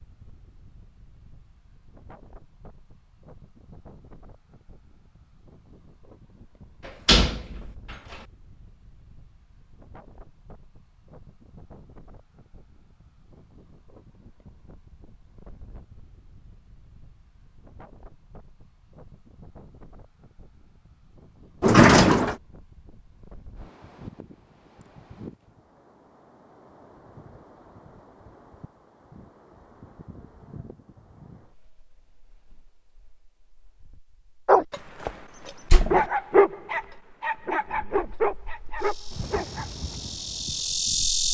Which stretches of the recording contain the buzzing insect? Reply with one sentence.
The buzzing insect can be heard from 38.8 to 41.2 s.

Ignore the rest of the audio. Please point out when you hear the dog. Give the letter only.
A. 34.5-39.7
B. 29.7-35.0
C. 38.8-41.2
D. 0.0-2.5
A.